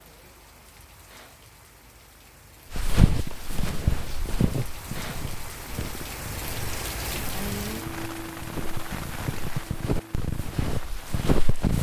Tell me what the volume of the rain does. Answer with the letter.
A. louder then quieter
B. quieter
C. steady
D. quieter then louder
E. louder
A.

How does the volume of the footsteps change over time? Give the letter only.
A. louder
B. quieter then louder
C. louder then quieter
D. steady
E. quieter
B.